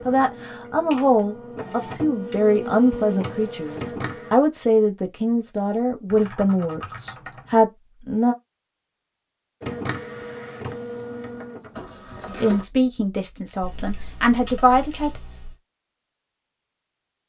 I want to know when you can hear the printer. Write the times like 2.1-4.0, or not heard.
0.0-4.4, 9.6-12.7.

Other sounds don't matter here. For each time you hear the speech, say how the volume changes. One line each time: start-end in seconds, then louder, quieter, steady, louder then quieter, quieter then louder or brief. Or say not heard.
0.1-8.3 steady
12.3-15.2 brief.